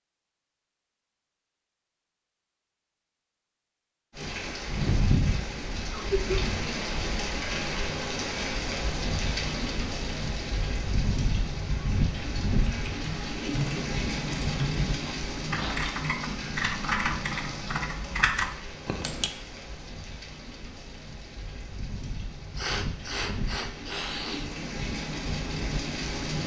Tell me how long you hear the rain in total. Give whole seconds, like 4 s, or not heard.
22 s.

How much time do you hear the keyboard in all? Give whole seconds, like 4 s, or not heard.
7 s.